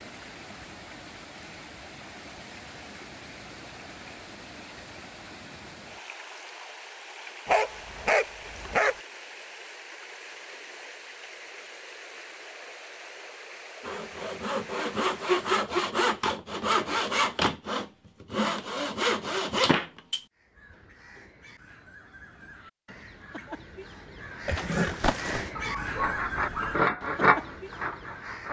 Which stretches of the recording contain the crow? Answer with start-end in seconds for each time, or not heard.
20.4-28.4.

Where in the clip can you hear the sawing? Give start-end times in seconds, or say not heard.
13.8-20.2, 25.9-28.4.